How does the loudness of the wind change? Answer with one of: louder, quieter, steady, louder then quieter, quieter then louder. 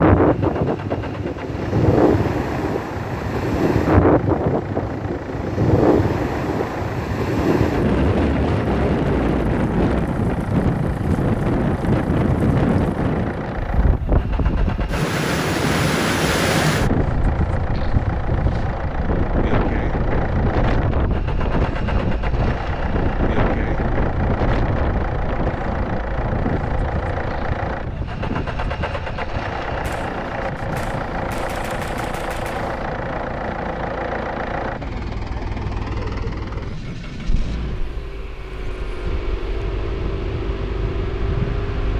quieter.